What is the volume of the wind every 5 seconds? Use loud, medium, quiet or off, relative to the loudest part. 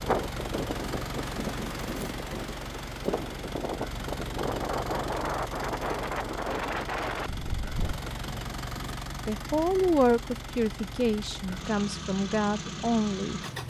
loud, loud, off.